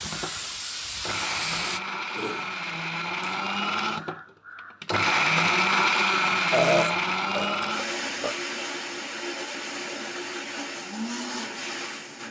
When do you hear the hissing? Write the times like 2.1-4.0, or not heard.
0.0-1.8.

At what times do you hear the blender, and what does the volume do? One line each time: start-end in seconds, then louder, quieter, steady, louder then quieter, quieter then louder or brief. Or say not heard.
0.0-12.2 louder then quieter.